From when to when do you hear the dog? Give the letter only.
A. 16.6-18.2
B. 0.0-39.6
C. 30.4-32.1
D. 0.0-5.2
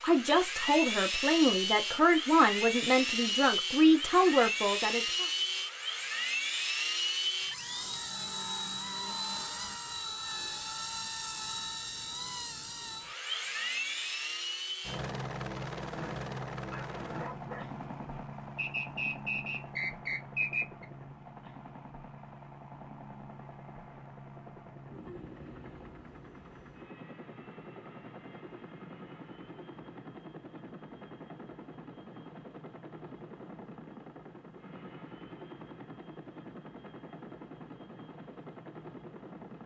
A.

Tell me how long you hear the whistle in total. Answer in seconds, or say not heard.
2 s.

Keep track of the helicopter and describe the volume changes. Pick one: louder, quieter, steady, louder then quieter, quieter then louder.
quieter.